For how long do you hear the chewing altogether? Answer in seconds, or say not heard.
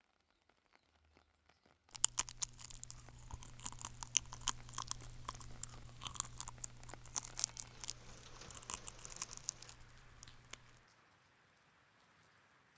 9 s.